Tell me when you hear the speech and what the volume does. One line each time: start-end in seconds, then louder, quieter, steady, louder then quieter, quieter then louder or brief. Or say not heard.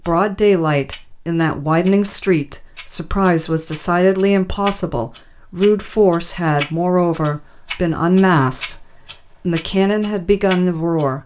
0.0-11.2 steady.